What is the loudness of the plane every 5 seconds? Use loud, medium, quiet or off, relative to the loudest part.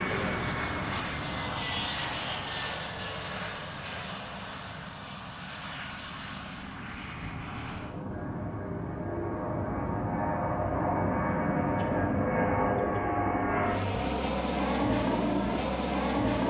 medium, medium, loud, loud.